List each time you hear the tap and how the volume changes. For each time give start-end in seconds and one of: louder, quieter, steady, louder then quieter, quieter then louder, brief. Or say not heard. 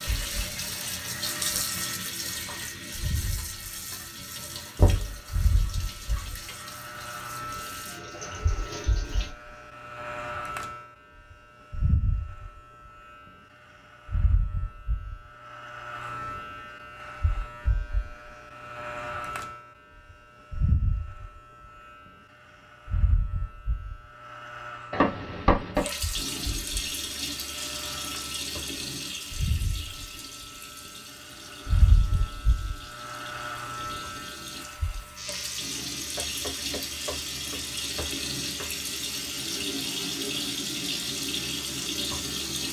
0.0-9.3 quieter
25.8-42.6 quieter then louder.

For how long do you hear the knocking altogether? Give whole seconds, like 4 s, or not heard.
4 s.